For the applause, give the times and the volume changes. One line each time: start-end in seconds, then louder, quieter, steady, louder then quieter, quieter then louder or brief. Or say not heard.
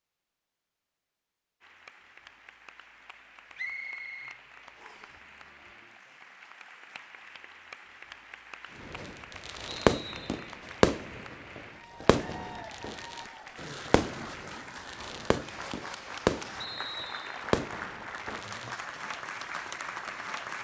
1.6-20.5 louder.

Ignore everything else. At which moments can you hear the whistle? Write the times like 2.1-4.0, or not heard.
3.5-5.2, 9.9-10.5, 16.6-17.4.